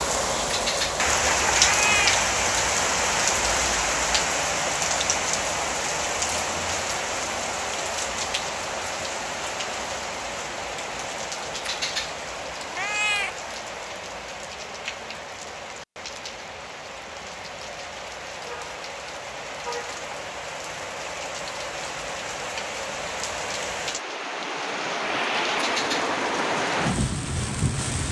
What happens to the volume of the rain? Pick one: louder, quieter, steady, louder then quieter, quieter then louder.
quieter then louder.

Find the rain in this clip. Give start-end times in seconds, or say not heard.
0.0-28.0.